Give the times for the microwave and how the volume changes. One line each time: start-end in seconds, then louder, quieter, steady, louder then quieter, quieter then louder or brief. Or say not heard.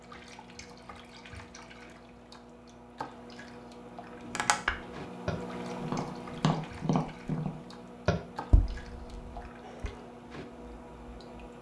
0.0-11.5 louder then quieter.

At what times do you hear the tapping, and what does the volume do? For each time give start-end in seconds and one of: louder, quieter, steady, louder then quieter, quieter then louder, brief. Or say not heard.
4.2-9.9 quieter.